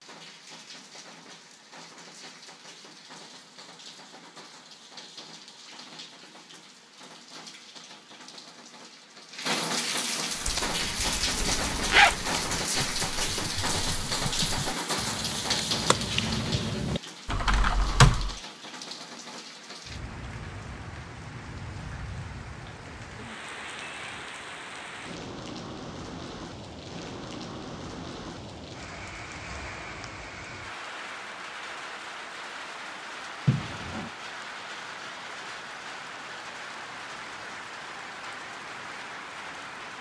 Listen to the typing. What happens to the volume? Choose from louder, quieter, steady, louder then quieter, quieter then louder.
louder.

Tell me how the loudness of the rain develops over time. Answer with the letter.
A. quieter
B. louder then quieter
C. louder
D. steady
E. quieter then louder
B.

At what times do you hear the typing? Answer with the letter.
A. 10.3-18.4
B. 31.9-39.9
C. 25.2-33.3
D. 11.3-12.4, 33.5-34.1
A.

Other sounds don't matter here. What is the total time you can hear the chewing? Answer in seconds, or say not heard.
not heard.